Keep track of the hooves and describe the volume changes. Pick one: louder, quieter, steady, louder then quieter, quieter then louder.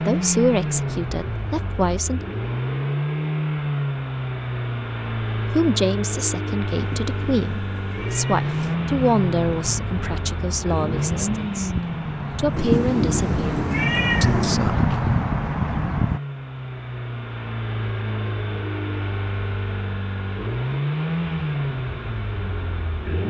louder.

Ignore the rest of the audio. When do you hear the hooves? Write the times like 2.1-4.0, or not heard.
8.3-16.2.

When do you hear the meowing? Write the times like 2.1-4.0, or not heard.
6.8-8.8, 12.6-14.6.